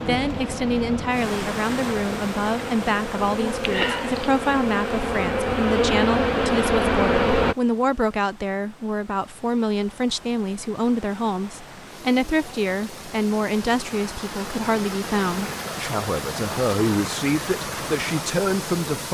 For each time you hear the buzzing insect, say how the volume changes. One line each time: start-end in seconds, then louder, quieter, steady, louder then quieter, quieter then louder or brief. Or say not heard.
0.0-7.5 louder.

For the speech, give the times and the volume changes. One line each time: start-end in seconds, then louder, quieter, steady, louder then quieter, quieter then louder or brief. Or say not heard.
0.0-19.0 steady.